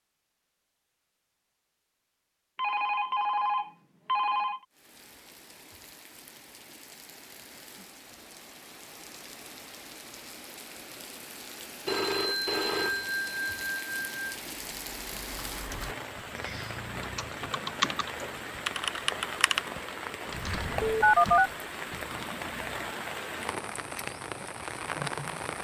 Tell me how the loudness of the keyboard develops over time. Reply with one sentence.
The volume of the keyboard goes up, then down.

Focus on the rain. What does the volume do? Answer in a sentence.
The loudness of the rain goes up.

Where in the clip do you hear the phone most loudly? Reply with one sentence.
The volume of the phone peaks at 21 seconds.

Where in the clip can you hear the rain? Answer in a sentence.
You can hear the rain from 4.7 to 25.5 s.